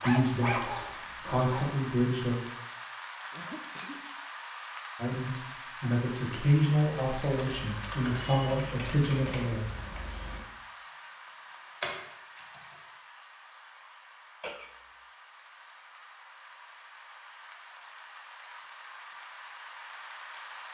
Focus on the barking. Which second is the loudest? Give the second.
1 s.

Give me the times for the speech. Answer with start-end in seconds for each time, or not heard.
0.0-2.4, 5.0-9.7.